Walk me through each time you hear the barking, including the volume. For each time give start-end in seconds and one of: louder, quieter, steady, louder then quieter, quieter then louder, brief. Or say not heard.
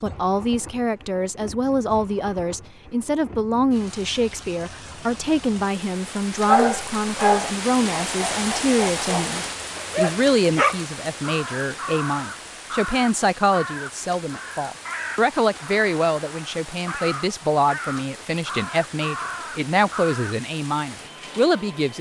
6.5-10.8 quieter then louder.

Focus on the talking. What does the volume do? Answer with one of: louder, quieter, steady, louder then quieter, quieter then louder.
steady.